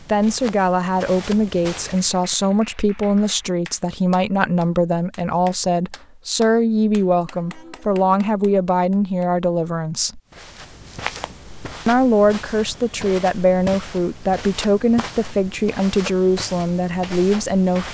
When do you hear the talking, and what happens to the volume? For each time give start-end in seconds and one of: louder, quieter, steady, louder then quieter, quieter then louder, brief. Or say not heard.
0.0-10.2 steady
11.8-17.9 steady.